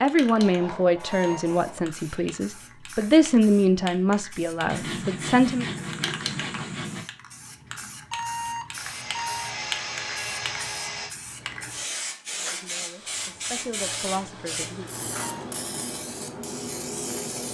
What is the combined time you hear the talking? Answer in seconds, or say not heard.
8 s.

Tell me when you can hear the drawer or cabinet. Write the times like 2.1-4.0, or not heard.
not heard.